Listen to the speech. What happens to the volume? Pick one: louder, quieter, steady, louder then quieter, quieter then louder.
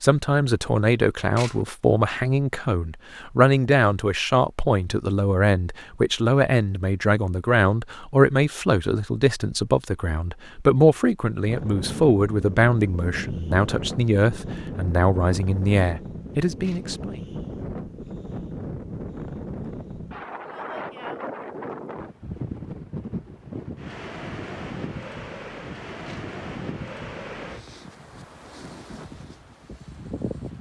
steady.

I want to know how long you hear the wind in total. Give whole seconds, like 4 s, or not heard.
19 s.